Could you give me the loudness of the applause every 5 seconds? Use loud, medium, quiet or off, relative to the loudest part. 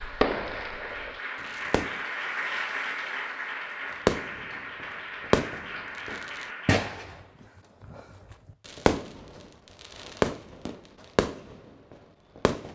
loud, loud, off.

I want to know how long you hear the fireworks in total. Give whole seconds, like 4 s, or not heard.
11 s.